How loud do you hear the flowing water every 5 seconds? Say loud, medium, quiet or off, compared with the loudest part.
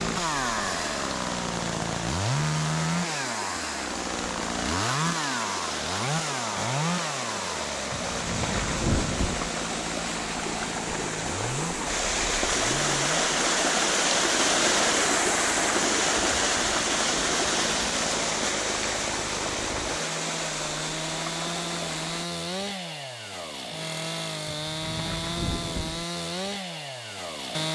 medium, medium, loud, loud, medium, off.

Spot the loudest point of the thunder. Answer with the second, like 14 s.
9 s.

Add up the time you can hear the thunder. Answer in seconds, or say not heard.
3 s.